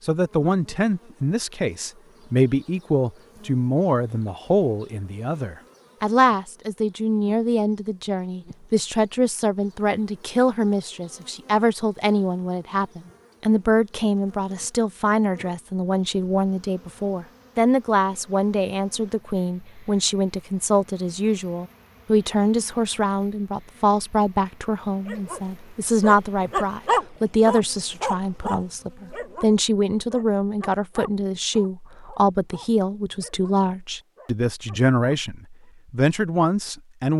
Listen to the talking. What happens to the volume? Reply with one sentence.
The volume of the talking stays about the same.